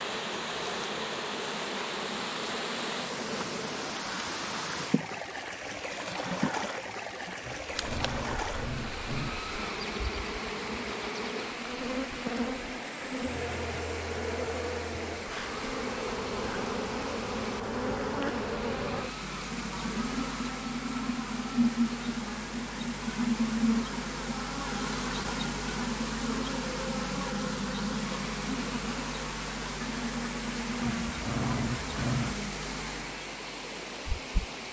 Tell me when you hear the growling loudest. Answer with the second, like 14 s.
32 s.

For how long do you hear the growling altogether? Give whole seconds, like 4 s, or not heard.
3 s.